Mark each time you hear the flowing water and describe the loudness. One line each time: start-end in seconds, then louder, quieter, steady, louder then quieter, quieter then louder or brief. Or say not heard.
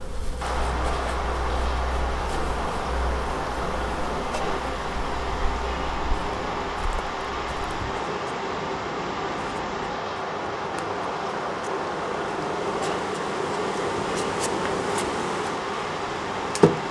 0.2-16.8 steady.